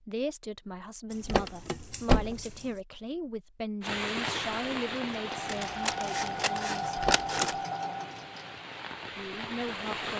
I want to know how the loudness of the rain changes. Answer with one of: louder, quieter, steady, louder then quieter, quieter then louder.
quieter then louder.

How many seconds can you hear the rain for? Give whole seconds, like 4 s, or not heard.
6 s.